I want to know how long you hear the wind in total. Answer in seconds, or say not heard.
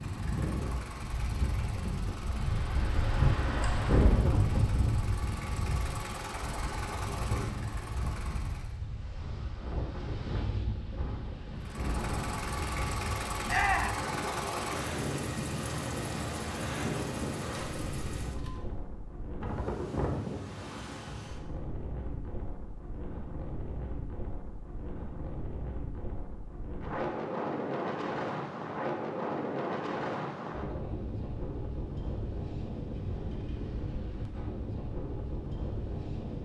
36 s.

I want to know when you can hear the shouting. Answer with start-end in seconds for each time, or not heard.
13.4-14.0.